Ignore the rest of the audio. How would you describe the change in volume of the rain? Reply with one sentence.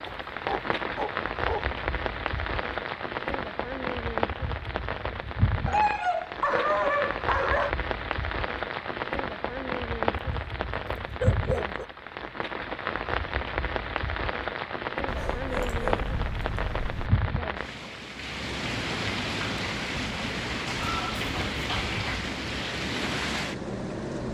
The loudness of the rain stays about the same.